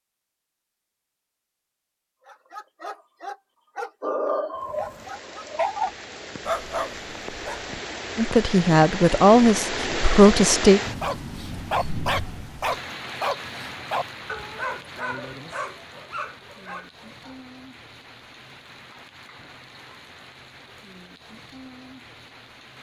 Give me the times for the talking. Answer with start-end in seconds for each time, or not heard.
8.2-10.8.